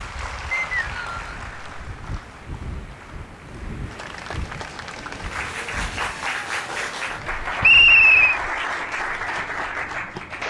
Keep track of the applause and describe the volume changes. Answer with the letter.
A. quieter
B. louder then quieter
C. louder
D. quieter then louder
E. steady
D.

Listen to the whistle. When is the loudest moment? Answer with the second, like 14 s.
8 s.